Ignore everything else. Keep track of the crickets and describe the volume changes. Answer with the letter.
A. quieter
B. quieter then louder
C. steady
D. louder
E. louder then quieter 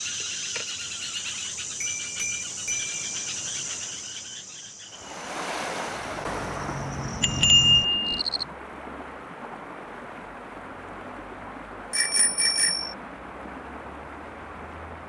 B.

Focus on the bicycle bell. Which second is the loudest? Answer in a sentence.
The loudest moment of the bicycle bell is at 8 seconds.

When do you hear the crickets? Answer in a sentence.
You can hear the crickets from 0.0 to 8.4 s.